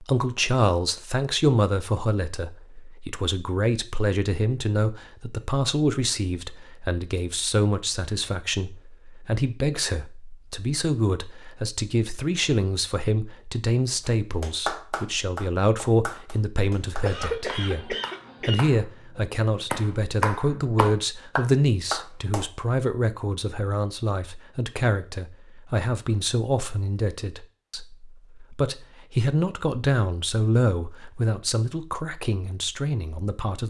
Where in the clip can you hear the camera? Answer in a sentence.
You can't hear the camera here.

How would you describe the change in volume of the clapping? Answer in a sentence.
The loudness of the clapping goes down, then up.